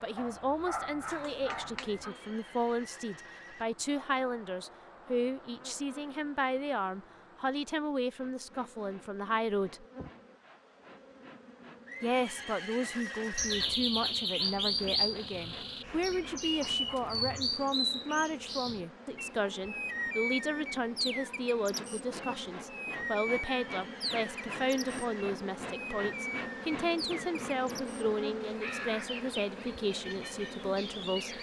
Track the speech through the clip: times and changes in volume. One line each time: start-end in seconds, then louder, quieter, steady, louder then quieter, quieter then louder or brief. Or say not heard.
0.0-9.8 steady
12.0-31.3 steady.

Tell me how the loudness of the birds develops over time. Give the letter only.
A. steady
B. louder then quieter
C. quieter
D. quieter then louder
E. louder
C.